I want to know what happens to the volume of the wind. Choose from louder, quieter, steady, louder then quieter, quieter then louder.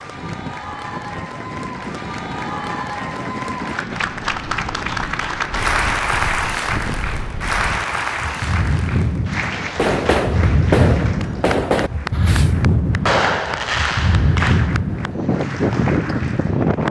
louder.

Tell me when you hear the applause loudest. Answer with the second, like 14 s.
6 s.